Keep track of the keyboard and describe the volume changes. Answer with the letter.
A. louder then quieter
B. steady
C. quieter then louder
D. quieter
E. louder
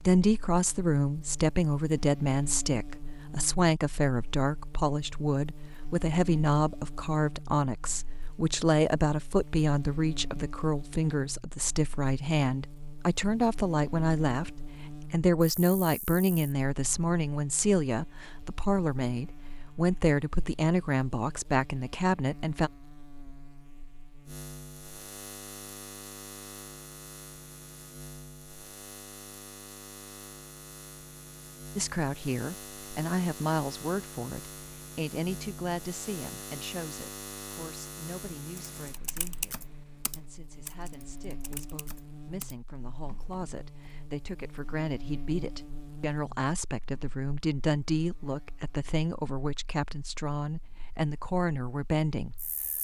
D.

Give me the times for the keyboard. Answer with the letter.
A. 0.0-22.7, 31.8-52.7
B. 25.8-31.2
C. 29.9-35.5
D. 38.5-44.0
D.